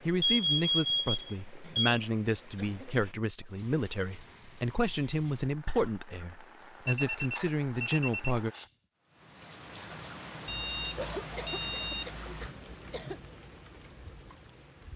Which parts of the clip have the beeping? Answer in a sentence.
You can hear the beeping from 0.2 to 2.0 s, from 6.8 to 8.3 s and from 10.4 to 12.5 s.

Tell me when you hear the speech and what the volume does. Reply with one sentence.
The speech can be heard from 0.1 to 8.5 s, at a steady volume.